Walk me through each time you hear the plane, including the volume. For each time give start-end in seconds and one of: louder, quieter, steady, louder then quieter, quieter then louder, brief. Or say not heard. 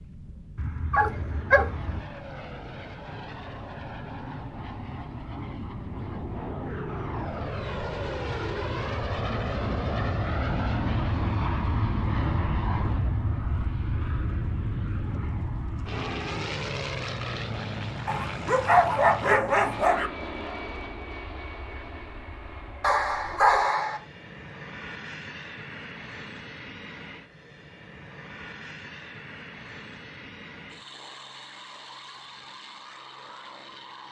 0.0-34.0 louder then quieter.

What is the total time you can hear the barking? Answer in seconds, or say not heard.
5 s.